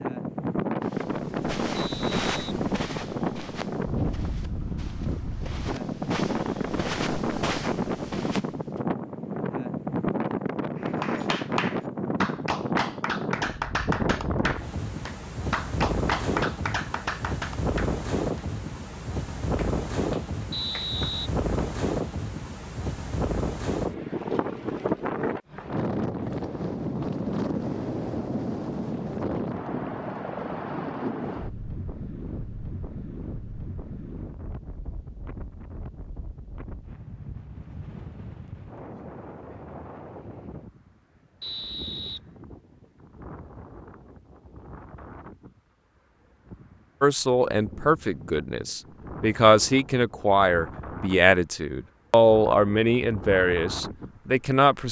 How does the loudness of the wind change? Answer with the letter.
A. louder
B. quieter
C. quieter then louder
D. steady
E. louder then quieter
B.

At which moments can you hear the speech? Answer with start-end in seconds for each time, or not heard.
47.0-54.8.